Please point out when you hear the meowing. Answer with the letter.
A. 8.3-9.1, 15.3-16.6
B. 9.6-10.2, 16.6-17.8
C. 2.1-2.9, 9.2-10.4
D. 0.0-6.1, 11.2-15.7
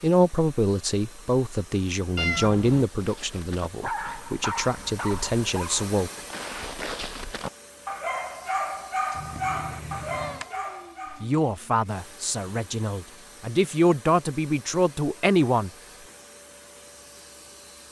C.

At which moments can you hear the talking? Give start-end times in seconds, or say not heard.
0.0-6.1, 11.2-15.7.